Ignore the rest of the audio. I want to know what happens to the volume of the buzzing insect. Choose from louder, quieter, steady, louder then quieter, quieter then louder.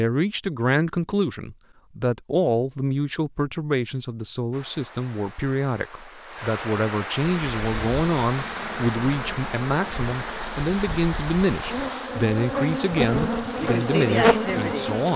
louder.